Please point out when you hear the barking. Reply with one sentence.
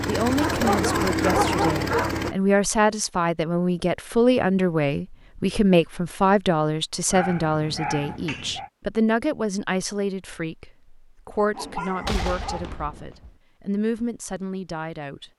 You can hear the barking from 0.3 to 2.3 s, from 7.1 to 8.7 s and from 11.5 to 12.7 s.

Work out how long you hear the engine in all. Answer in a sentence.
The engine can be heard for 2 seconds in total.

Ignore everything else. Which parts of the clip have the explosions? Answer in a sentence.
You can hear the explosions from 12.0 to 13.3 s.